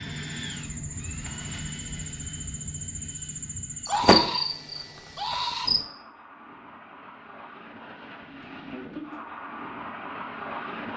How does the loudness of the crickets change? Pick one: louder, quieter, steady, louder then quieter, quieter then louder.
louder then quieter.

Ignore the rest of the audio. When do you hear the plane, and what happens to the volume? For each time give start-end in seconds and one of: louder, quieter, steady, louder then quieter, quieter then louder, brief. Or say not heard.
0.0-10.9 quieter then louder.